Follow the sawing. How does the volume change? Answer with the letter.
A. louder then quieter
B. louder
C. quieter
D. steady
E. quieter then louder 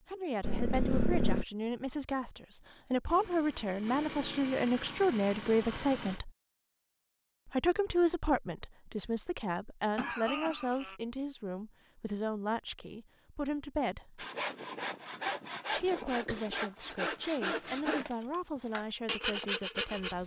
D.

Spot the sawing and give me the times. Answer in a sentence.
The sawing can be heard from 14.2 to 20.2 s.